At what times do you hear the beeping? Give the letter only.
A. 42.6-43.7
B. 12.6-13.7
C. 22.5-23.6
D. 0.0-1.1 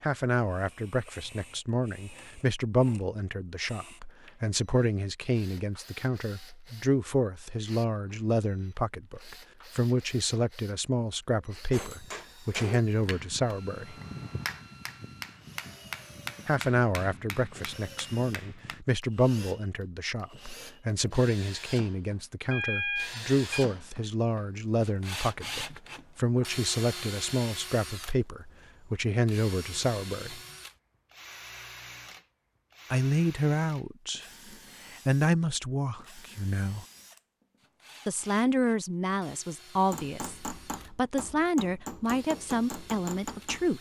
C.